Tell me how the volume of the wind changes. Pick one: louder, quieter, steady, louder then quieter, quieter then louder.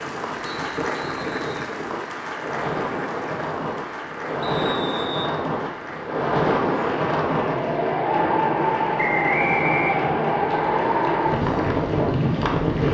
louder.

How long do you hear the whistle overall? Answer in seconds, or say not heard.
3 s.